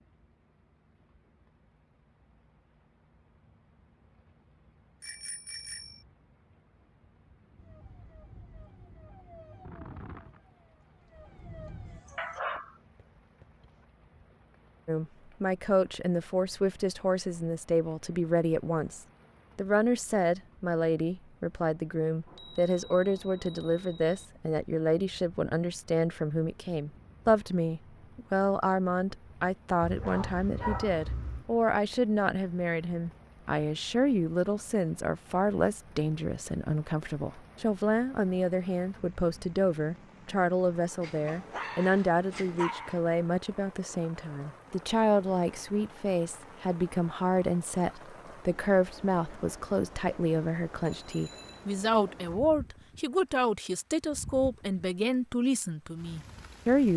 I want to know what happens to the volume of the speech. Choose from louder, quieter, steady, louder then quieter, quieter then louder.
steady.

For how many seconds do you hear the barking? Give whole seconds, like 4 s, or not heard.
5 s.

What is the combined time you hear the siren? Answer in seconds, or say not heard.
5 s.